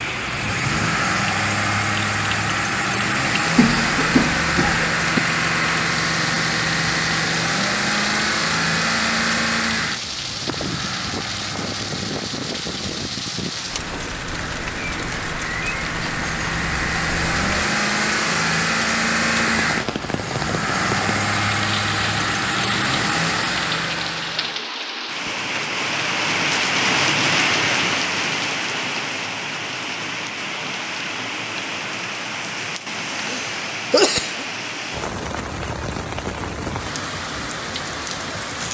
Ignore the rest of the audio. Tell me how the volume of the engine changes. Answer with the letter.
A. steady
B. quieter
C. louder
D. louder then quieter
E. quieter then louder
E.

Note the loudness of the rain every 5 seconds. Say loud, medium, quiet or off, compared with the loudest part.
medium, medium, medium, medium, medium, loud, medium, medium.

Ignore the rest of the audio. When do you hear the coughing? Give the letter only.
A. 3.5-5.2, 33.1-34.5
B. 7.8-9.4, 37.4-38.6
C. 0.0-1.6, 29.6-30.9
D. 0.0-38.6
A.